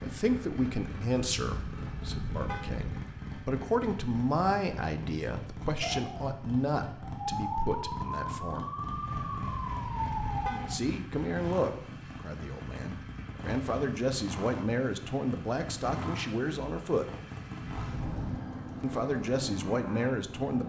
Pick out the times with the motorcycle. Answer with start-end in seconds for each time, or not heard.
0.0-20.6.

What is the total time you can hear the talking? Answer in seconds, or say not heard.
17 s.